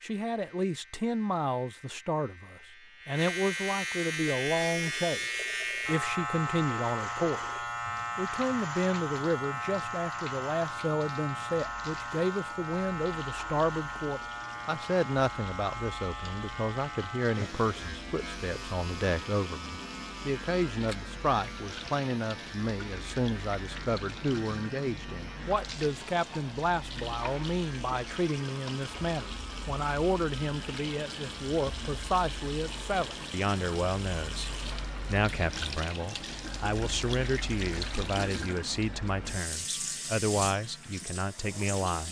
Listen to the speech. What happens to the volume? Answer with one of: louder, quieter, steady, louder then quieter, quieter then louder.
steady.